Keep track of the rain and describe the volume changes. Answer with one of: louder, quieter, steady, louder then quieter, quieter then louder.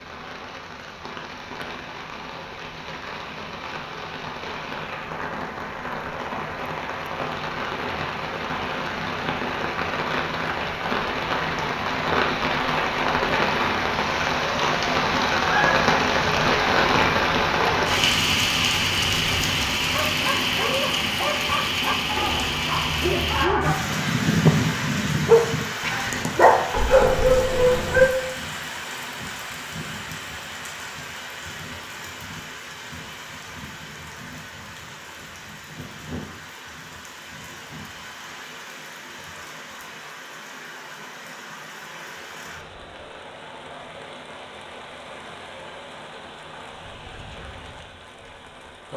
louder then quieter.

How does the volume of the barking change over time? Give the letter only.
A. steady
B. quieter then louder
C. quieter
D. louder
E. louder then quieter
D.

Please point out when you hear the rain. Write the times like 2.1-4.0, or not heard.
0.0-48.9.